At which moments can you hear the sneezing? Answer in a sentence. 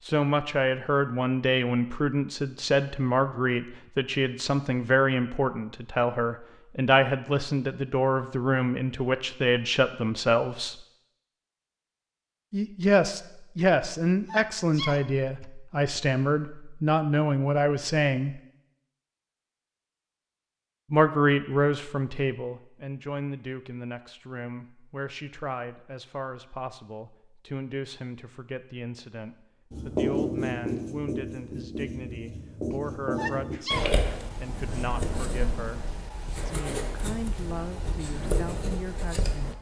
You can hear the sneezing from 14.2 to 15.5 s and from 32.7 to 33.9 s.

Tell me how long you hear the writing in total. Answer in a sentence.
You can hear the writing for 10 seconds altogether.